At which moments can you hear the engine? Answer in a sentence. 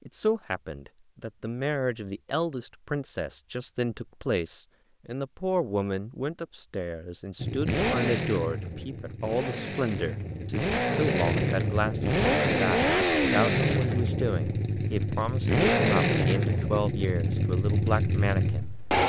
You can hear the engine from 7.4 to 19.0 s.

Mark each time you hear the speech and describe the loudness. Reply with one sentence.
You can hear the speech from 0.1 to 19.0 s, at a steady volume.